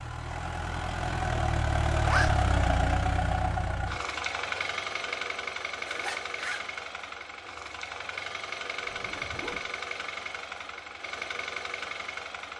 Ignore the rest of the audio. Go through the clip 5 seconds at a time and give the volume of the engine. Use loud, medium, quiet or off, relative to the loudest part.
loud, medium, medium.